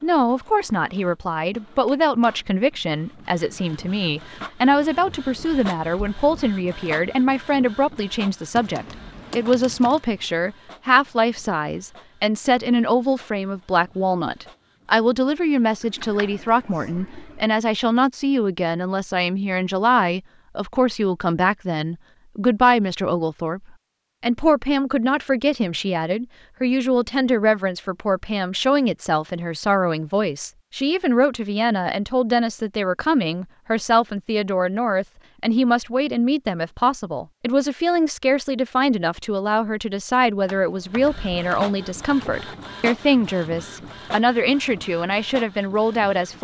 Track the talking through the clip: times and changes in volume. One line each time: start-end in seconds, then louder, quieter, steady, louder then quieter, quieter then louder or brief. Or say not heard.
0.0-23.6 steady
24.2-46.4 steady.